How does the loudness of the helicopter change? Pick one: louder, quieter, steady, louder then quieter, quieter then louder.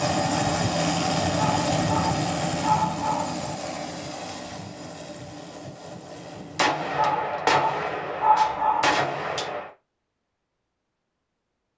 quieter.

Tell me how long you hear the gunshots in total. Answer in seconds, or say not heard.
3 s.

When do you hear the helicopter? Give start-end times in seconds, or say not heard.
0.0-6.7.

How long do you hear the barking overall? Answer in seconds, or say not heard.
4 s.